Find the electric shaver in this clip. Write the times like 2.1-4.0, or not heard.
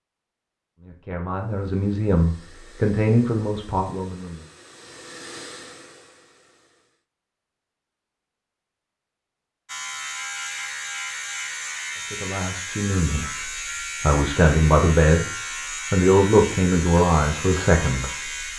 9.7-18.5.